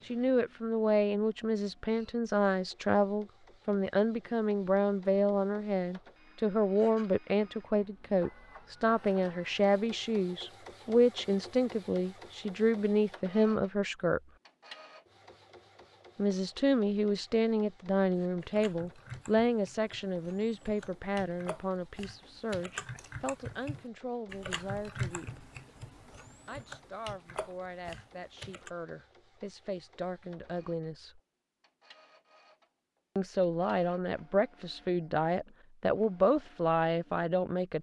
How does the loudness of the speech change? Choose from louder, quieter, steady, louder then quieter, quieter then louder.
quieter then louder.